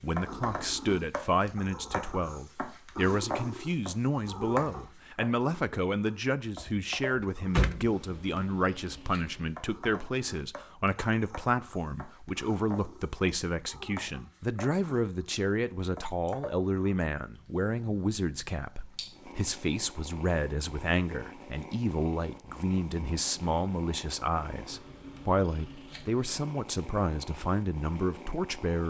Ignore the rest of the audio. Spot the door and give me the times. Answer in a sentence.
You can hear the door from 6.6 to 8.0 s.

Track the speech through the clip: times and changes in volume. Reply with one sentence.
You can hear the speech from 0.0 to 28.8 s, at a steady volume.